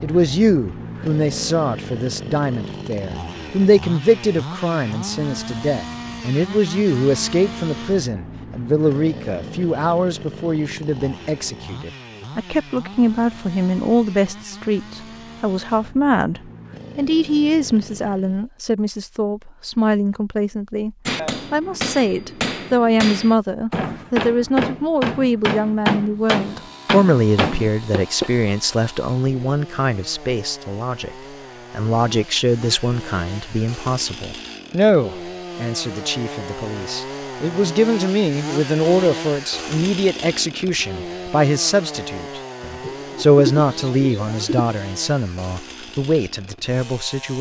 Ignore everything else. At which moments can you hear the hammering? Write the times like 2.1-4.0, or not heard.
21.1-28.3.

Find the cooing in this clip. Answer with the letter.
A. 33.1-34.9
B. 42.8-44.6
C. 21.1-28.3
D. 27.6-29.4
B.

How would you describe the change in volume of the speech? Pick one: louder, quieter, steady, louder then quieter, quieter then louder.
steady.